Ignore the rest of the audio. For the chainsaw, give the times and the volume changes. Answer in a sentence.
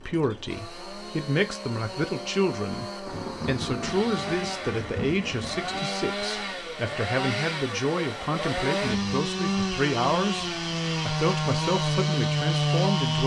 You can hear the chainsaw from 0.0 to 13.2 s, getting louder.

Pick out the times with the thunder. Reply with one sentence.
You can hear the thunder from 3.0 to 5.8 s.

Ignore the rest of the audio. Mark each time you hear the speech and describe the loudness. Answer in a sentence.
You can hear the speech from 0.0 to 13.2 s, at a steady volume.